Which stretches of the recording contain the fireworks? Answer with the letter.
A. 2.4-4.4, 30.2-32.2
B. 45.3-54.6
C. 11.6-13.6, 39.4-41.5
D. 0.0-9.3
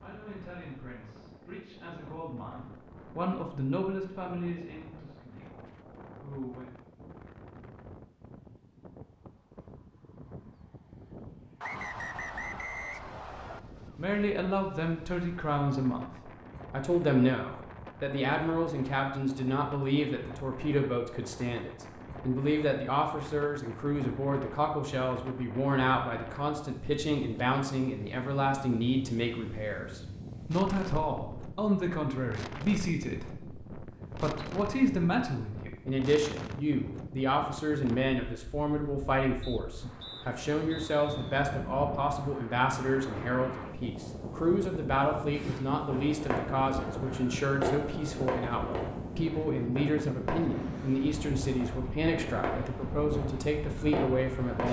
B.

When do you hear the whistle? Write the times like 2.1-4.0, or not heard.
11.6-13.6, 39.4-41.5.